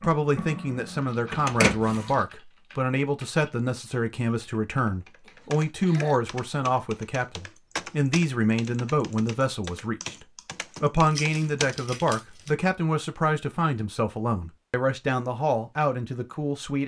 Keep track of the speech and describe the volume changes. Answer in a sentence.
The volume of the speech stays about the same.